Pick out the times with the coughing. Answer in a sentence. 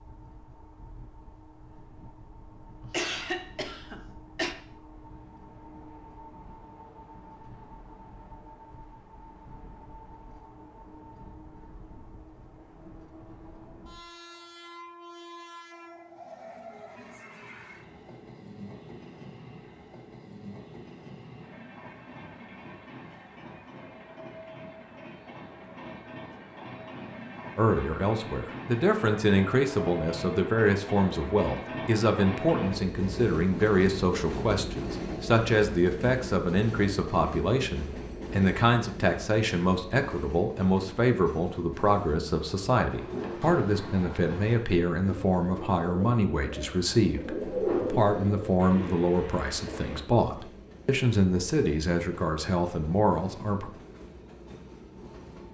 You can hear the coughing from 2.8 to 4.5 s.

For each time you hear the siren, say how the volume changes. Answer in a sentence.
The siren can't be heard in this clip.